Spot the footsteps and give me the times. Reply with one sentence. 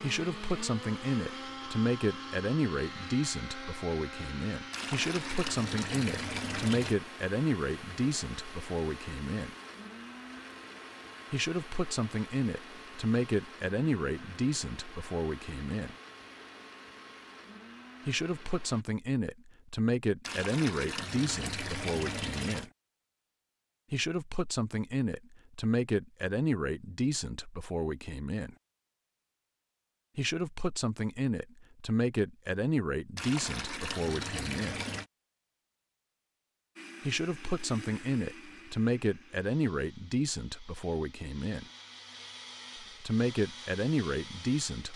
You can't hear the footsteps here.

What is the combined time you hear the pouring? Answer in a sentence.
The pouring can be heard for 7 seconds in total.